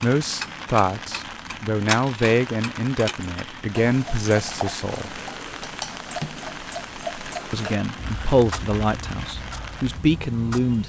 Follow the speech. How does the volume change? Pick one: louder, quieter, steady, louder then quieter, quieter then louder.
steady.